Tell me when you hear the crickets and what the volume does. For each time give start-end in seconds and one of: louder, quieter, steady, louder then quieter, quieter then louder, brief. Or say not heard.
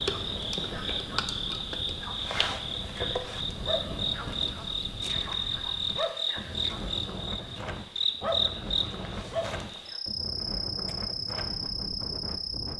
0.0-12.7 steady.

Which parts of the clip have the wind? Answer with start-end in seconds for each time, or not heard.
0.0-12.7.